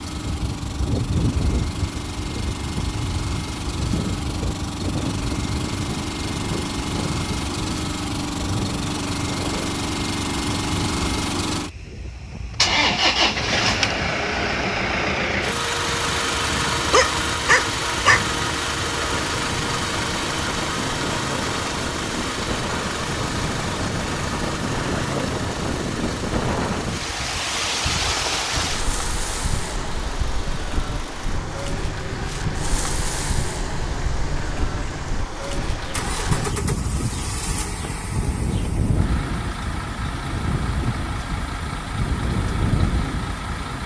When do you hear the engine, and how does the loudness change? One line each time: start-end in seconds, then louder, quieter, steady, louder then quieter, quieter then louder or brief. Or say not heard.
0.0-43.8 louder then quieter.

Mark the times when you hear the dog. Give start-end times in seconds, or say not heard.
16.9-18.2.